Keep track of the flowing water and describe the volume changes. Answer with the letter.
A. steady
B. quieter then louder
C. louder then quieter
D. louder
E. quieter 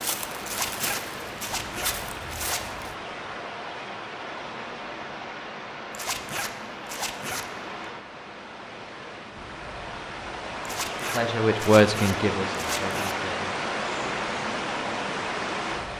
D.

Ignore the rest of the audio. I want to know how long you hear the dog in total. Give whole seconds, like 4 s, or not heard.
not heard.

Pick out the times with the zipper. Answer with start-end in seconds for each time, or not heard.
0.5-2.6, 5.9-7.5, 10.7-13.2.